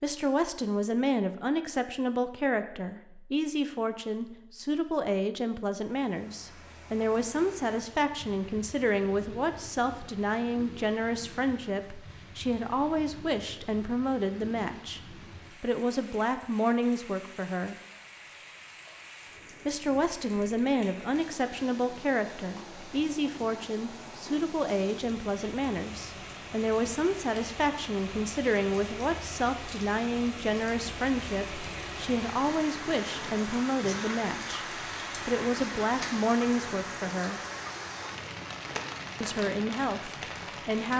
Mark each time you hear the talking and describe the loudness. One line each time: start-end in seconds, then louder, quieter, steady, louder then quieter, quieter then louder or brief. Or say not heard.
0.0-17.8 steady
19.6-34.6 steady
35.2-37.4 brief
39.2-40.9 brief.